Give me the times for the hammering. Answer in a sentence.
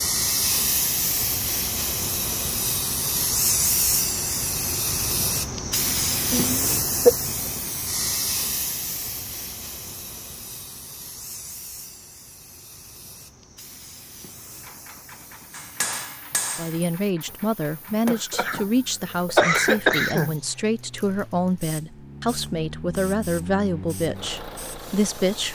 The hammering can be heard from 15.5 to 18.2 s.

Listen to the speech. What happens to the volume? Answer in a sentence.
The loudness of the speech stays about the same.